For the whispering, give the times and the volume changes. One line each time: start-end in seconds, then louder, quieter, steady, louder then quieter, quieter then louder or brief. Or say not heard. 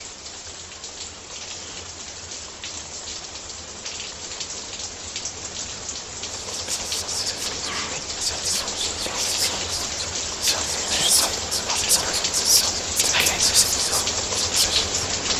6.5-14.9 louder.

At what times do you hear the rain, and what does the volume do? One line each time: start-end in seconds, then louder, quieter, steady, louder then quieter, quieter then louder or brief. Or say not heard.
0.0-15.3 louder.